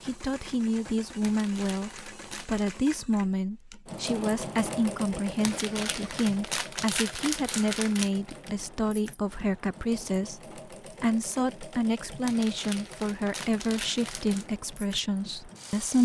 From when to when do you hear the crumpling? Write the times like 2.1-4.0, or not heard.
1.2-2.8, 5.4-8.1, 12.2-14.5.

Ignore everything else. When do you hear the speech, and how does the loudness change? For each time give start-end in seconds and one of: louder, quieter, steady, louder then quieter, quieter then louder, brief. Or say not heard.
0.0-16.0 steady.